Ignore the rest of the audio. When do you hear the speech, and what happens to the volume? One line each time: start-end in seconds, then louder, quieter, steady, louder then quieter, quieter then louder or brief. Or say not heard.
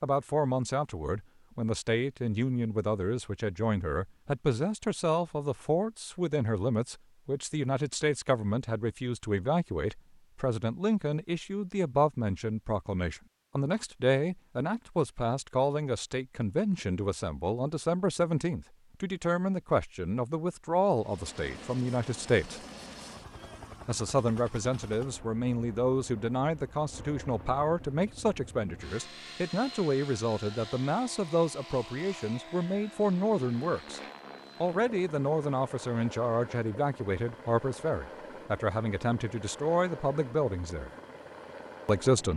0.0-22.6 steady
23.9-34.0 steady
34.6-40.9 steady
41.9-42.3 brief.